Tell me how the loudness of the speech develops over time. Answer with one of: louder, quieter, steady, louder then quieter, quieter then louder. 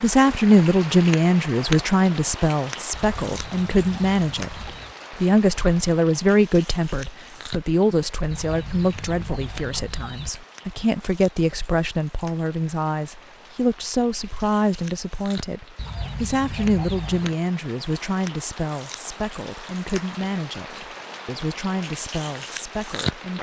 quieter.